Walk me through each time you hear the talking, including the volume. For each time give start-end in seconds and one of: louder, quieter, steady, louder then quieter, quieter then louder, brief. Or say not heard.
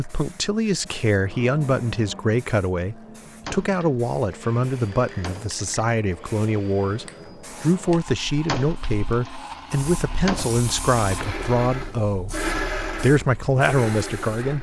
0.0-14.5 steady.